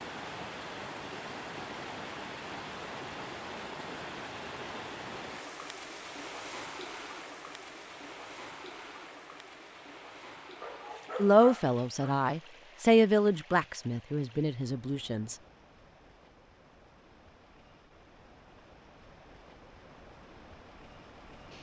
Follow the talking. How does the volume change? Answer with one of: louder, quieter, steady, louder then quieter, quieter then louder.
louder then quieter.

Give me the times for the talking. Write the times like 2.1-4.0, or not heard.
11.2-15.3.